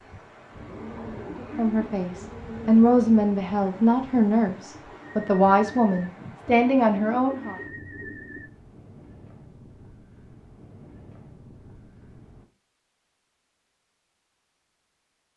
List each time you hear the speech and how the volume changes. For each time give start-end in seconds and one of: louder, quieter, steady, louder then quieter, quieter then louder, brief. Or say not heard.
1.4-7.5 steady.